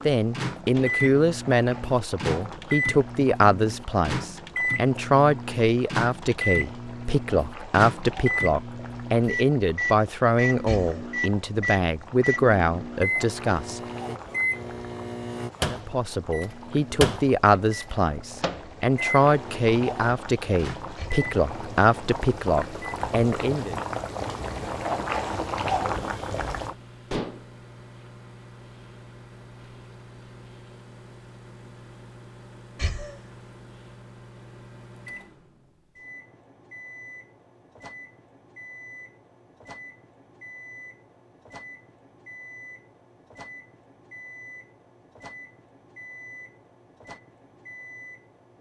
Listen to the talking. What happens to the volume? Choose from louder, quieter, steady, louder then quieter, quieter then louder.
steady.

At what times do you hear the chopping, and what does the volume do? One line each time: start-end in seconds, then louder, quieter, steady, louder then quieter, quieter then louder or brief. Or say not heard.
not heard.